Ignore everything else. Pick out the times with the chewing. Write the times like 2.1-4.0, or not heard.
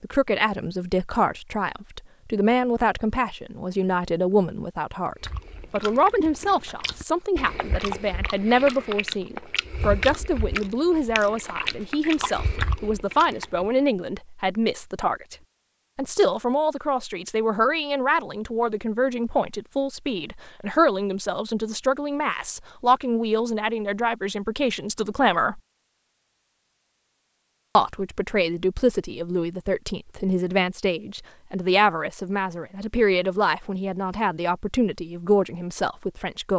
5.2-13.7.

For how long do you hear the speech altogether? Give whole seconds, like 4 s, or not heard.
34 s.